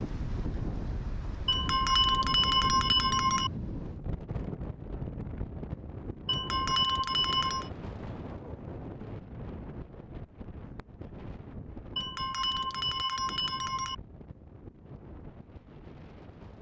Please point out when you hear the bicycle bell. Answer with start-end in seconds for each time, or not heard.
1.4-3.5, 6.2-7.7, 11.9-13.9.